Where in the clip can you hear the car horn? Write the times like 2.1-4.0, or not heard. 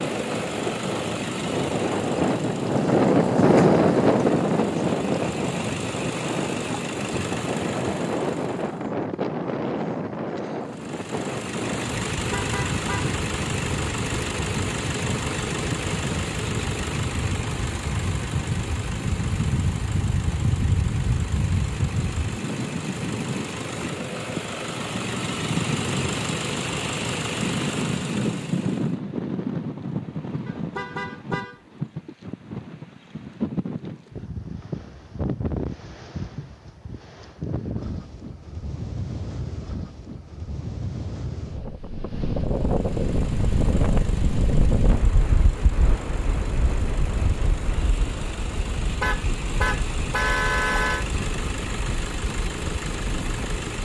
12.2-13.2, 30.4-31.6, 49.0-51.0.